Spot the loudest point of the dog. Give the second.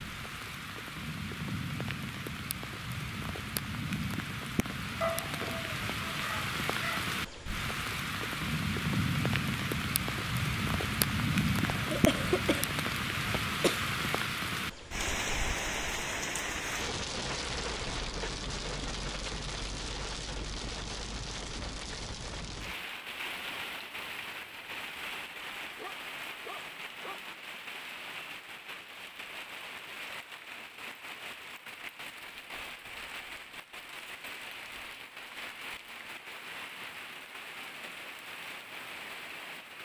5 s.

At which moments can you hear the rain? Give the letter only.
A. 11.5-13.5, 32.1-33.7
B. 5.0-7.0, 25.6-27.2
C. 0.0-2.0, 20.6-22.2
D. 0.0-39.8
D.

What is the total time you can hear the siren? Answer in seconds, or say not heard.
not heard.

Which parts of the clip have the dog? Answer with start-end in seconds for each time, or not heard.
5.0-7.0, 25.6-27.2.